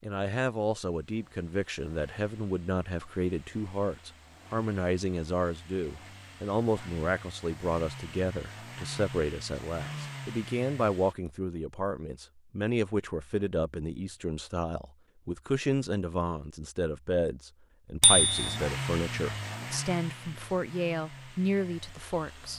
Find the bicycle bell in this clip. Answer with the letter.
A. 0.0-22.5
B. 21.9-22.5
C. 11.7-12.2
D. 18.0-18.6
D.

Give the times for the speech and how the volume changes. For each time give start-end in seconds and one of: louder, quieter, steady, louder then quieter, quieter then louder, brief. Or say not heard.
0.0-22.5 steady.